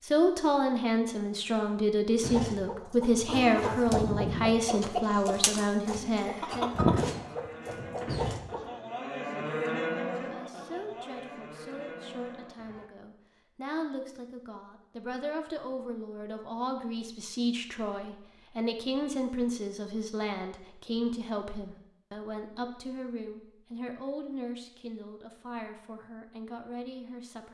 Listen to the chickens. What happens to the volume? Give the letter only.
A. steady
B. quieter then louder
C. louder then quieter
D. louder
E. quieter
C.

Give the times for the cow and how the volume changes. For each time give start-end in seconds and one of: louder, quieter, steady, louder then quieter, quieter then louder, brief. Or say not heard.
6.0-12.9 louder then quieter.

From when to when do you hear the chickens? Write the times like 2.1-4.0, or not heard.
2.2-8.7.